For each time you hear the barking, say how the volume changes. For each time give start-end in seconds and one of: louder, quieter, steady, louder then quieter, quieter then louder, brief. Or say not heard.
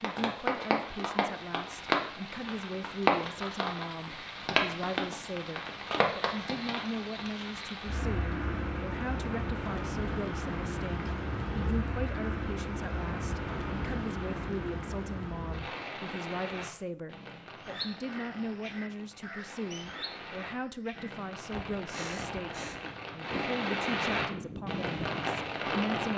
not heard.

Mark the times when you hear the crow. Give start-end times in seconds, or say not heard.
17.6-25.3.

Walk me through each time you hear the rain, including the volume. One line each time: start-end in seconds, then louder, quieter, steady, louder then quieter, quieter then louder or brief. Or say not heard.
0.0-26.1 quieter then louder.